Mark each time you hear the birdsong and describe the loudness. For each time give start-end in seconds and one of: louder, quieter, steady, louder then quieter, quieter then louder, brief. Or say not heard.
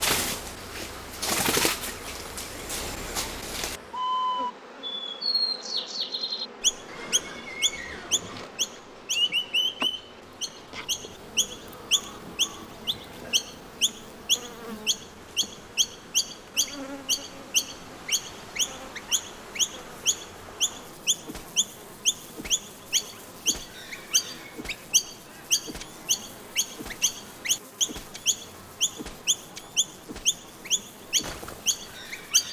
0.0-32.4 steady.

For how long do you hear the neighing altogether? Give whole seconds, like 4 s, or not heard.
2 s.